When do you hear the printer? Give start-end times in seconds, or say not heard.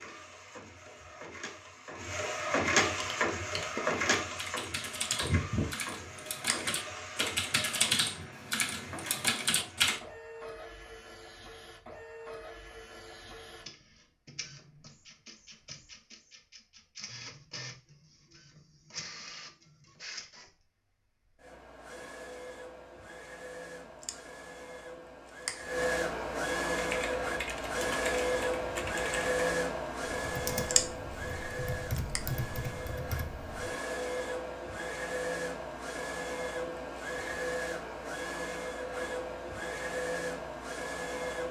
0.0-41.4.